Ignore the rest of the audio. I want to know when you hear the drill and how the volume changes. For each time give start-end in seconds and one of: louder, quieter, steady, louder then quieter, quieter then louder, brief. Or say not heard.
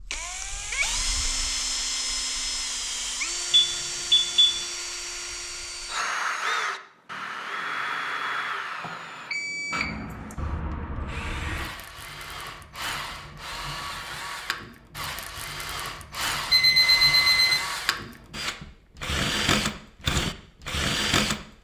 0.0-21.4 quieter then louder.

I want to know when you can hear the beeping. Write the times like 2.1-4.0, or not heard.
3.5-4.5, 8.8-9.8, 16.5-17.6.